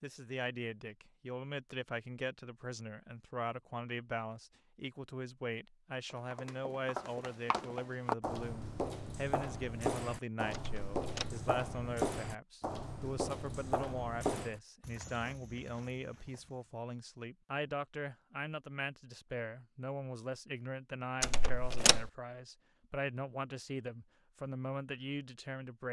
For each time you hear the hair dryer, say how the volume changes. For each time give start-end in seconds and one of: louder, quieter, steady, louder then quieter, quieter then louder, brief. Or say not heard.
not heard.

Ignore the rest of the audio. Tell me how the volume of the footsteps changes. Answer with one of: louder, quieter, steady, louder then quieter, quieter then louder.
quieter.